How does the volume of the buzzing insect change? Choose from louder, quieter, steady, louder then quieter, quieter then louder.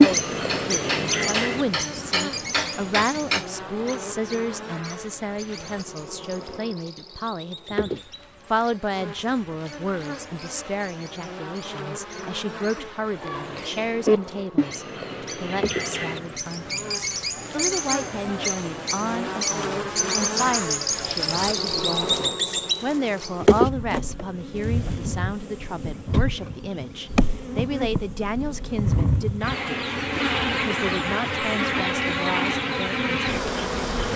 louder.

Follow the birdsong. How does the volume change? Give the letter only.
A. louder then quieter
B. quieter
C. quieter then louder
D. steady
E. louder
C.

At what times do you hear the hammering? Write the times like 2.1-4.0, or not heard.
0.0-3.5.